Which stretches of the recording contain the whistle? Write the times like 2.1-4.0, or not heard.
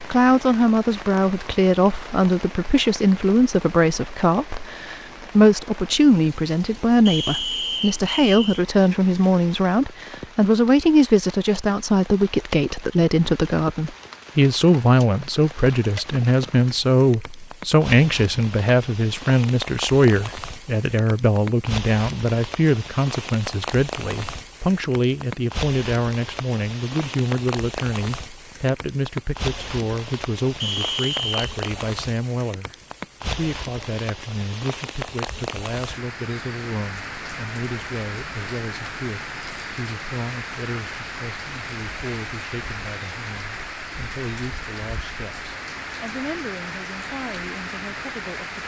7.0-8.7, 30.6-31.5.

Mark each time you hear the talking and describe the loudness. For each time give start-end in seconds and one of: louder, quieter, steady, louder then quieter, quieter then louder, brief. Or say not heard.
0.1-48.6 quieter.